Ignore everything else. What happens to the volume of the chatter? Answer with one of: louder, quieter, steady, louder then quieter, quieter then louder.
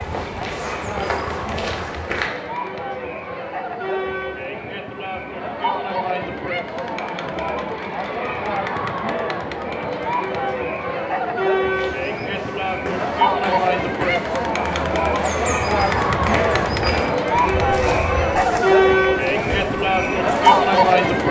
louder.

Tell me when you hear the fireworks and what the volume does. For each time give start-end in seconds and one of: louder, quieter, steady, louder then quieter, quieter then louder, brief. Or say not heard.
not heard.